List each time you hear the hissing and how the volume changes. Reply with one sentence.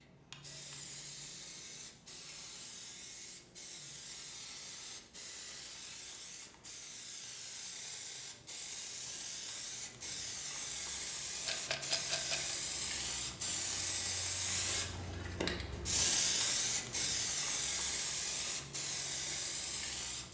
You can hear the hissing from 0.0 to 20.3 s, getting louder.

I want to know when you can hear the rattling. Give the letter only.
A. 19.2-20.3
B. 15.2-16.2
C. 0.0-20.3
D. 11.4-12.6
D.